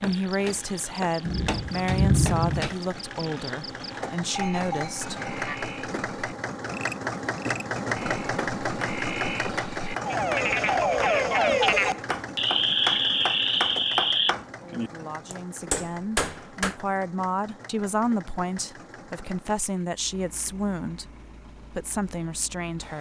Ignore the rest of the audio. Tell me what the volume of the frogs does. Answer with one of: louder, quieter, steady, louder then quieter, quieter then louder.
louder.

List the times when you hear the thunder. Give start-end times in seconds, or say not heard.
1.2-2.7.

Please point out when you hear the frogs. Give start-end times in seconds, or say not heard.
0.0-14.3.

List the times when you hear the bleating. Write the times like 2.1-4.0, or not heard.
3.9-5.6.